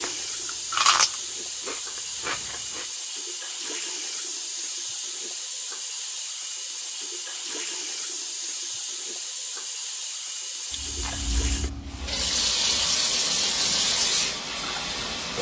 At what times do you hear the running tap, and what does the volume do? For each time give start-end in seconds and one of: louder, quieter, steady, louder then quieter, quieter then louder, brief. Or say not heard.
0.0-15.3 louder.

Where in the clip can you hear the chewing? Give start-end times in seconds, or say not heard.
0.0-2.9, 10.7-12.3.